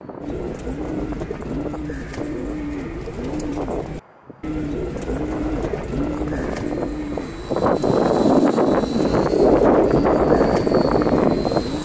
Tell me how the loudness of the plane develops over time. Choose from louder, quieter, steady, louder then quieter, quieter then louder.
louder.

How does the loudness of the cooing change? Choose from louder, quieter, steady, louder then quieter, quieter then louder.
steady.